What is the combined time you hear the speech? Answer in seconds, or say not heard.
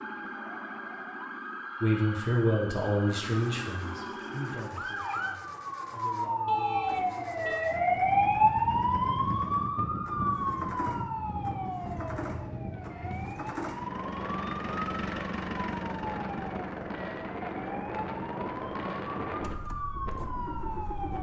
7 s.